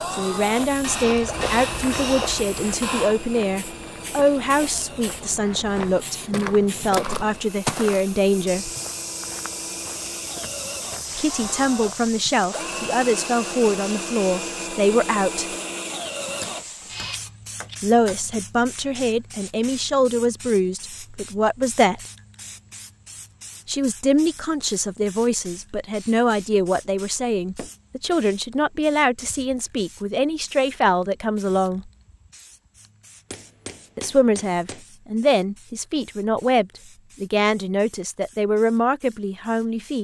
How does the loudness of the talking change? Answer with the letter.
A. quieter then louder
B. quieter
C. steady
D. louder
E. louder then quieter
C.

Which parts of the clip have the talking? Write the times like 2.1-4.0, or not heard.
0.1-8.7, 11.2-15.6, 17.8-22.0, 23.6-31.9, 34.0-39.9.